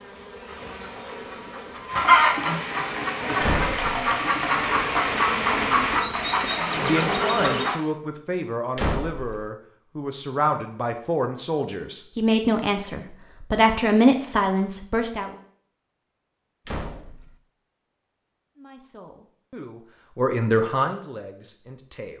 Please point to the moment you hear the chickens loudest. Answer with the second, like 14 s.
2 s.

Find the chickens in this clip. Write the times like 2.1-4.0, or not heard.
0.5-7.8.